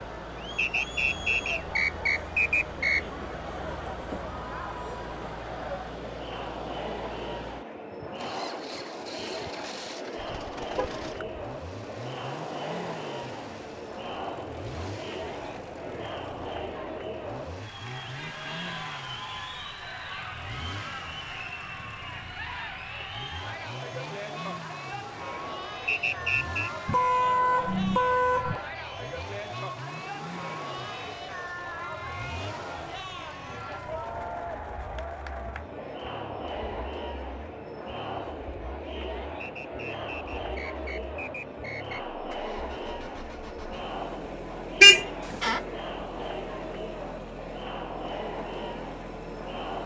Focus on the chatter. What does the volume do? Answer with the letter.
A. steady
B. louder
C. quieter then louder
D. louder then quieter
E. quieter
A.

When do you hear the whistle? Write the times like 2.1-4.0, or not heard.
0.6-3.0, 25.9-26.7, 39.4-42.0.